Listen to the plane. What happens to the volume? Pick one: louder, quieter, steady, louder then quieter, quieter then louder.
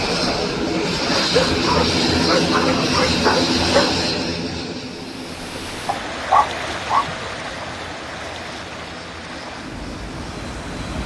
quieter.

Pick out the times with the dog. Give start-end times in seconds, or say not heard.
1.1-3.9, 5.8-7.2.